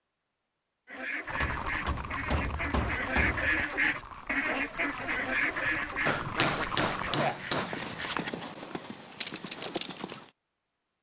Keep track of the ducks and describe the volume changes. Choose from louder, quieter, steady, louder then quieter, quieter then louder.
louder then quieter.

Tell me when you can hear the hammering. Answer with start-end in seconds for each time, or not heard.
1.4-3.6, 6.0-7.7.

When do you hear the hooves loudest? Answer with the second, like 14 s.
10 s.